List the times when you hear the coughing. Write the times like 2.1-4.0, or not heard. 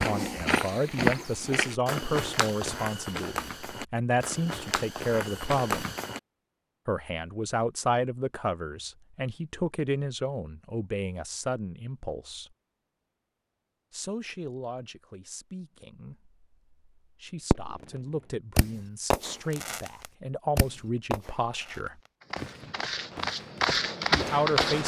not heard.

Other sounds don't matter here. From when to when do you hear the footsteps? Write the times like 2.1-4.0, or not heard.
0.0-6.2, 22.3-24.8.